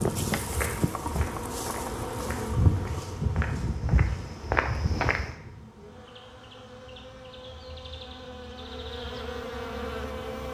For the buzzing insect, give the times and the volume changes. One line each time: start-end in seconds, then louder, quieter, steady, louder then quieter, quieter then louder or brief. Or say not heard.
0.0-10.4 quieter then louder.